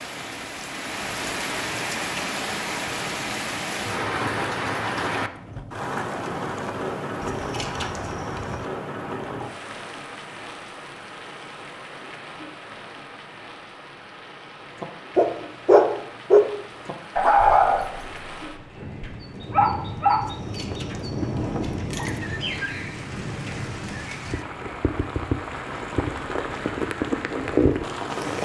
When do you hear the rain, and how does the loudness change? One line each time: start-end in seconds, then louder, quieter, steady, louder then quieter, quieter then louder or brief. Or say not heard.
0.0-28.4 quieter then louder.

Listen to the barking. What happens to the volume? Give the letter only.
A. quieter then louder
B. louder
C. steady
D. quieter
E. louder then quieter
D.